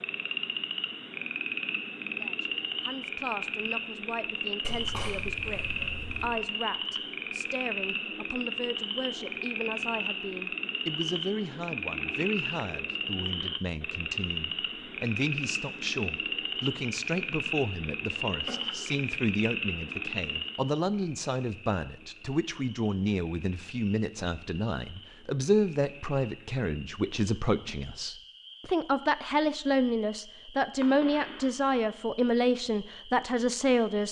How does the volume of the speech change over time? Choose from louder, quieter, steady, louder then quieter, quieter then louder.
louder.